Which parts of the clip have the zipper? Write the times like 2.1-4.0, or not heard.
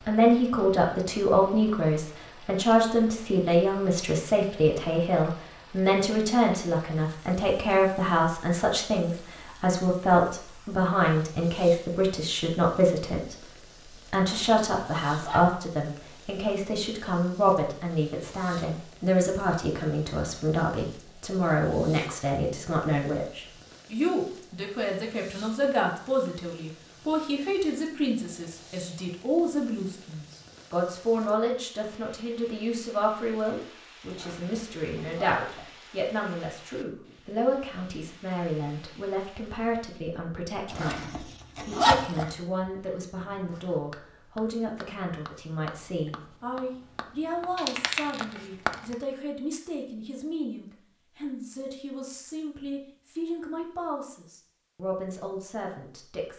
14.2-15.4, 34.0-35.6, 40.7-42.2.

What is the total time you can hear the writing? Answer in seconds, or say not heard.
8 s.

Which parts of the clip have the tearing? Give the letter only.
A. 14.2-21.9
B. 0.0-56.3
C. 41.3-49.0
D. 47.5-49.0
D.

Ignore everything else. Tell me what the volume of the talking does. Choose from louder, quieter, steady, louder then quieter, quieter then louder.
quieter.